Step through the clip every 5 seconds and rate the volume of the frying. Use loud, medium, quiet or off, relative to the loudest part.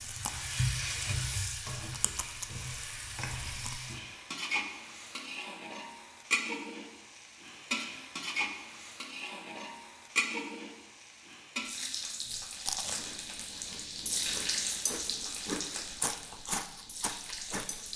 loud, loud, loud, medium.